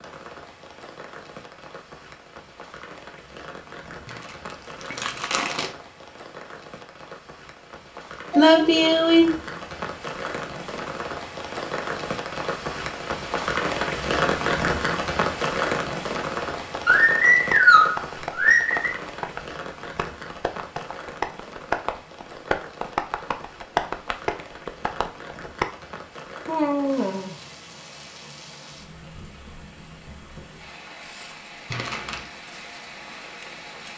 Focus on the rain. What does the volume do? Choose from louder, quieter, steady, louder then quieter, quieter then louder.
louder then quieter.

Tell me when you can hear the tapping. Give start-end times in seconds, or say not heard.
16.4-25.6.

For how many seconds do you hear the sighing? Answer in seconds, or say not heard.
4 s.